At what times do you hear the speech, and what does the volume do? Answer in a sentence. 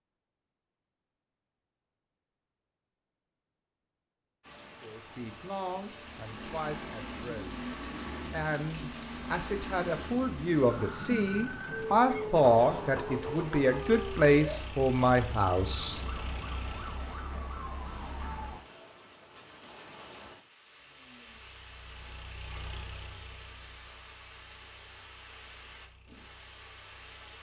You can hear the speech from 4.8 to 16.0 s, getting louder.